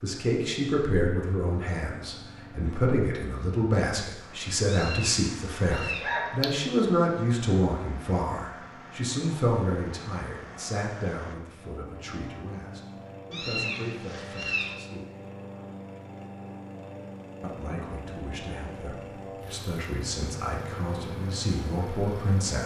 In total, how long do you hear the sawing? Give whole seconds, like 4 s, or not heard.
not heard.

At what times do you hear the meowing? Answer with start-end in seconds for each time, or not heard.
4.7-6.1, 13.3-14.8.